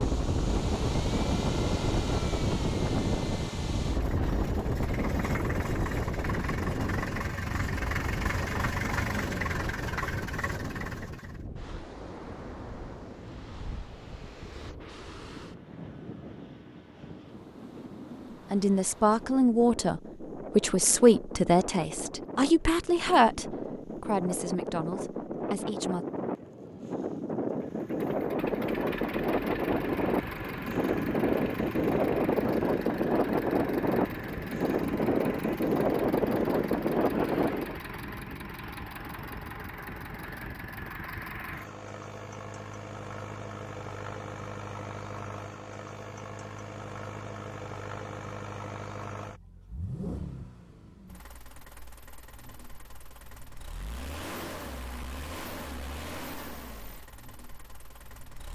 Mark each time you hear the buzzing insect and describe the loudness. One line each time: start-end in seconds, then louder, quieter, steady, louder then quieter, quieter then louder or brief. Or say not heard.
not heard.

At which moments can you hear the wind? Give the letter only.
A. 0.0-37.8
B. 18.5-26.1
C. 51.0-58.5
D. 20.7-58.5
A.